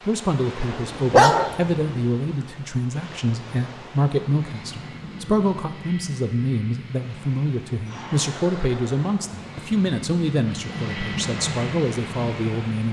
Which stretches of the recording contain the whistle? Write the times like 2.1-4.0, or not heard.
not heard.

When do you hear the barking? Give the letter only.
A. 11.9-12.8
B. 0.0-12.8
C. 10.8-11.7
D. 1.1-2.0
D.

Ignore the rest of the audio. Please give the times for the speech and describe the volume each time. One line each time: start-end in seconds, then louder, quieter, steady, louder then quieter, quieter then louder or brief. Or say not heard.
0.0-12.8 steady.